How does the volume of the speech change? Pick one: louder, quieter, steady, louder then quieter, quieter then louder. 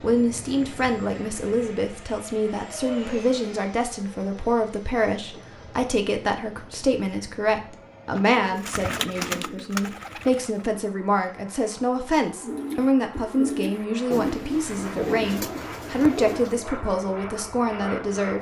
steady.